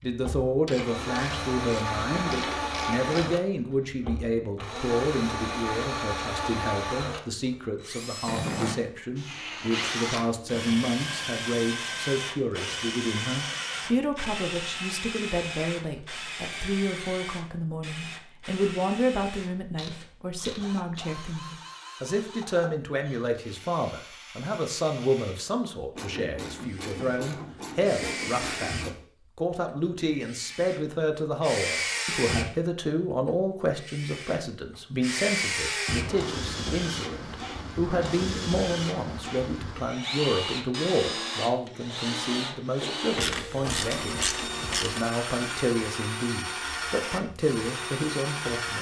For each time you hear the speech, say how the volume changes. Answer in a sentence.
You can hear the speech from 0.0 to 48.7 s, at a steady volume.